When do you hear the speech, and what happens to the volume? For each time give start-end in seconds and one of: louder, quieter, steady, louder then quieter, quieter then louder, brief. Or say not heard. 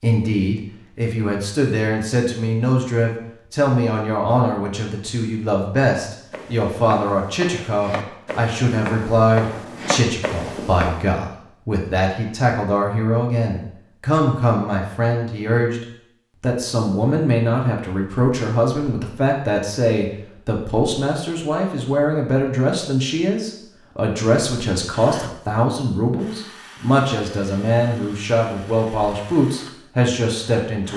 0.0-30.9 steady.